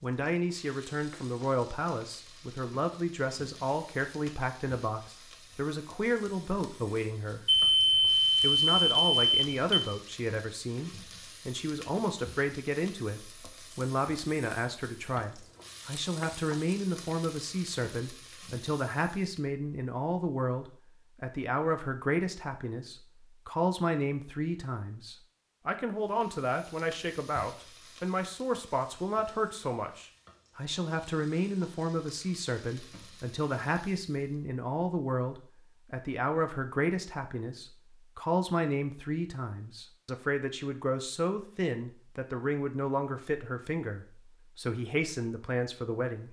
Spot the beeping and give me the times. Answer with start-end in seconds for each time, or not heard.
7.5-9.8.